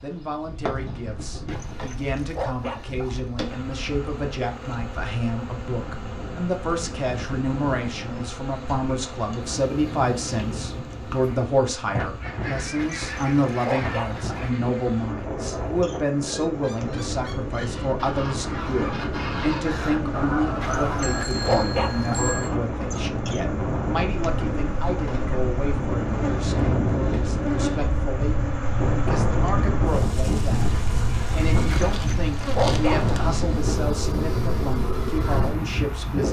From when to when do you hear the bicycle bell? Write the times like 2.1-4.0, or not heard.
21.0-22.6.